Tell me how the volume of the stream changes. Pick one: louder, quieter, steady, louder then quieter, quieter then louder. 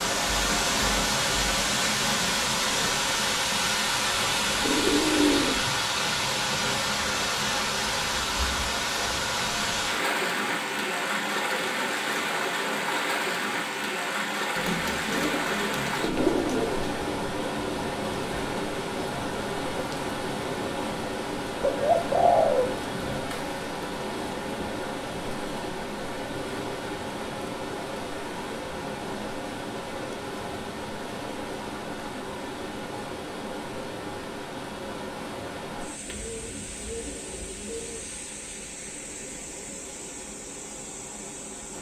quieter.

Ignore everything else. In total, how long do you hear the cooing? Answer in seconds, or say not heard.
7 s.